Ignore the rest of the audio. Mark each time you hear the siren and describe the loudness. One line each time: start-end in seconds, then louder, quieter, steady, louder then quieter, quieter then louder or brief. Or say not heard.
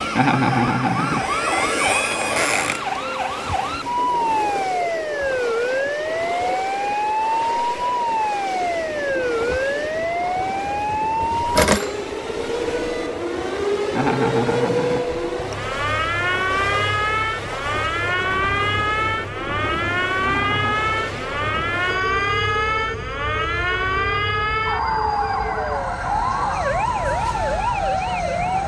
0.0-28.6 steady.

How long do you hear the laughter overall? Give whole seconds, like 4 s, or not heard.
3 s.